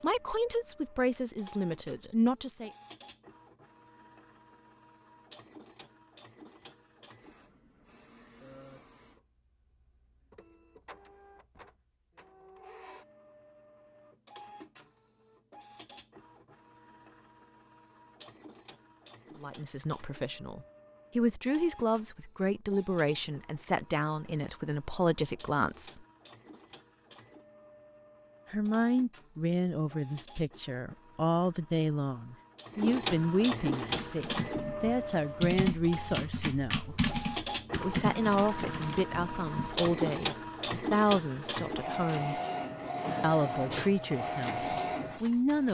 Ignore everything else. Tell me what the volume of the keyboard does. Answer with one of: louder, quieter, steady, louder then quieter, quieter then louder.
louder then quieter.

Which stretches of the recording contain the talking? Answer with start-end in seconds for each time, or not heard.
0.0-2.7, 19.4-26.0, 28.5-37.0, 37.8-42.4, 43.2-45.6.